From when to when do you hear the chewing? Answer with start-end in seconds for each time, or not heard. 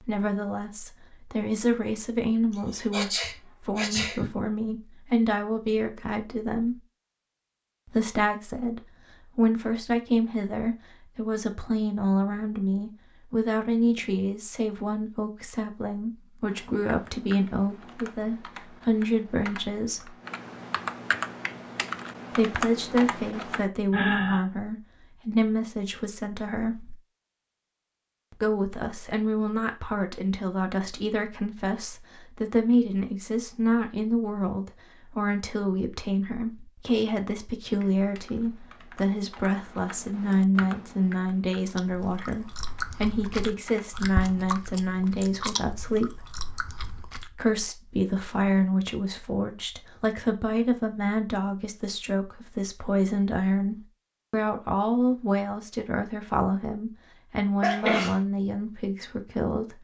41.6-47.3.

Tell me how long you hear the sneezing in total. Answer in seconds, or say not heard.
3 s.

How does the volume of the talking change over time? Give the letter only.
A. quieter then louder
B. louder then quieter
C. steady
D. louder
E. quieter
C.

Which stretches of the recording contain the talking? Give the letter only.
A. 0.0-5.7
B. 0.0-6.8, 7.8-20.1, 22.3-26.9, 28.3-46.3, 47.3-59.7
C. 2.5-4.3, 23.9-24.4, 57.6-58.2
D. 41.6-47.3
B.